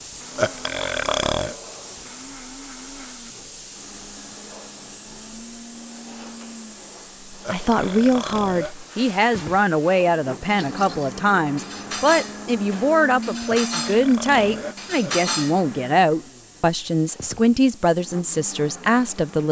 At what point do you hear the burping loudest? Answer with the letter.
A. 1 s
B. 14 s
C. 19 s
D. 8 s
A.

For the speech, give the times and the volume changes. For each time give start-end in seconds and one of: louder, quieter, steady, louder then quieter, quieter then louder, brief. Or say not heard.
7.3-19.4 steady.